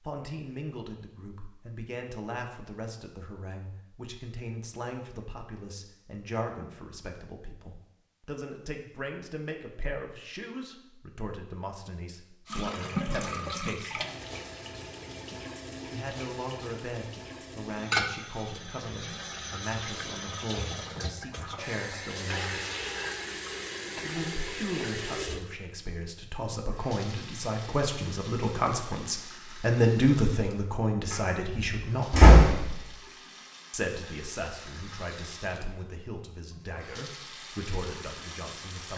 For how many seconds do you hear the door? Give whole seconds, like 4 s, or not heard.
2 s.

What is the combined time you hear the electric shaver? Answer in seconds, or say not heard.
not heard.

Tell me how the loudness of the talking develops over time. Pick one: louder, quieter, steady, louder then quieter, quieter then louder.
louder then quieter.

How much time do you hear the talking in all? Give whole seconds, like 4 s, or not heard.
34 s.